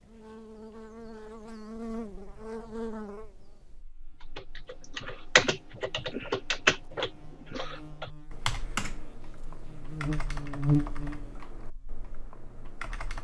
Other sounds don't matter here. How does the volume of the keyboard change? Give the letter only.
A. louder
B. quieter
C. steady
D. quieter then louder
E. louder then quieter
B.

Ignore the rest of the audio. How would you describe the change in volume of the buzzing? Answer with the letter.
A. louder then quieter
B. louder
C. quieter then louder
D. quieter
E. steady
C.